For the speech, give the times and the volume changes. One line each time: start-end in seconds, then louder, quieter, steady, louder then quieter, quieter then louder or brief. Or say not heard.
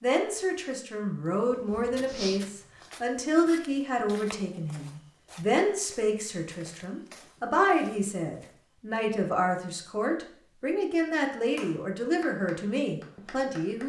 0.0-13.8 steady.